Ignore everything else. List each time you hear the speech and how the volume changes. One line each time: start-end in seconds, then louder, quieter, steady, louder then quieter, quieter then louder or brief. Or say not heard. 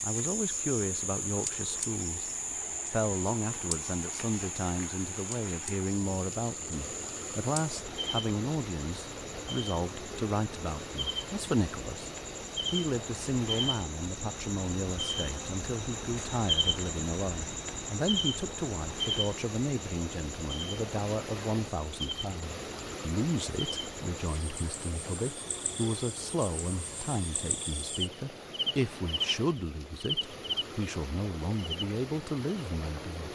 0.0-2.2 brief
2.9-12.1 steady
12.7-33.2 steady.